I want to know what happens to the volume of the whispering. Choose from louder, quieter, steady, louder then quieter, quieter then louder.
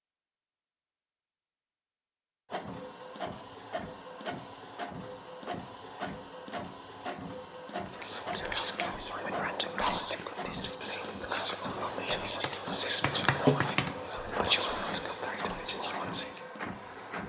steady.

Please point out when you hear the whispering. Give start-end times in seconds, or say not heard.
7.9-16.4.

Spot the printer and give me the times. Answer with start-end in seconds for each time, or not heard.
2.5-17.2.